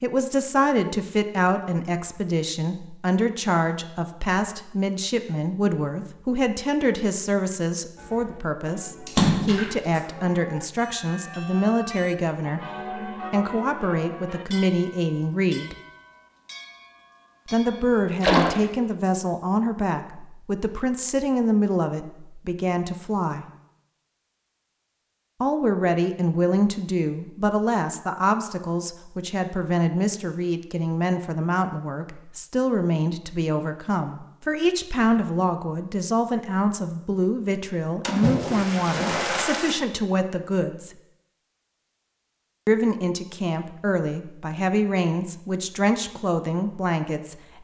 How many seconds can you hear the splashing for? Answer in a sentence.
You can hear the splashing for 3 seconds altogether.